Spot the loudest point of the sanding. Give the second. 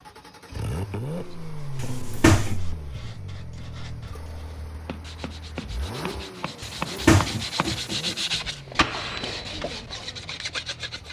8 s.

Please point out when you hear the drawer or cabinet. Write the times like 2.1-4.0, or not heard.
1.8-2.6, 6.6-8.2.